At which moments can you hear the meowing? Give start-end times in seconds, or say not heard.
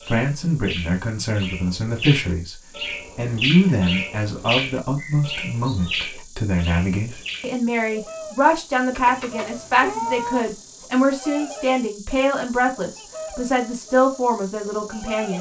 5.0-6.0, 8.9-10.5.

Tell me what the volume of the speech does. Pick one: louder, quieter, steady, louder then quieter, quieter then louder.
steady.